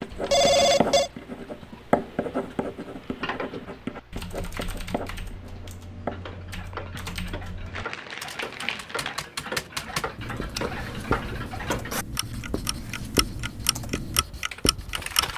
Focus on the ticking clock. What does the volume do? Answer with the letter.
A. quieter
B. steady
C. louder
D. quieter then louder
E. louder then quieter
C.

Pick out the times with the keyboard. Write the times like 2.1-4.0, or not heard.
4.1-15.3.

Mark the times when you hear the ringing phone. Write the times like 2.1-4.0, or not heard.
0.3-1.1.